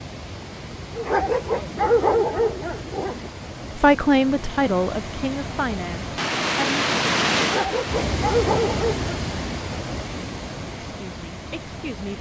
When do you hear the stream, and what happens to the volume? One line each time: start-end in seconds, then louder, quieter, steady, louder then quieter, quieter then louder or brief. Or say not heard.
0.0-12.1 louder then quieter.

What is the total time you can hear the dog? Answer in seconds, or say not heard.
4 s.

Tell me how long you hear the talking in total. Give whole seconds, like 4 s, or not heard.
4 s.